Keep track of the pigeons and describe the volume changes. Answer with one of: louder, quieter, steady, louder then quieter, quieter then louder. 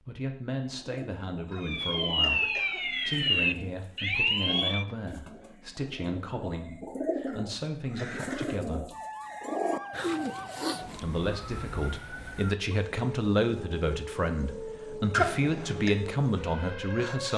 louder.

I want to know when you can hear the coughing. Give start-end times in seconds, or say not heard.
1.5-2.9, 7.2-8.6, 15.1-15.9.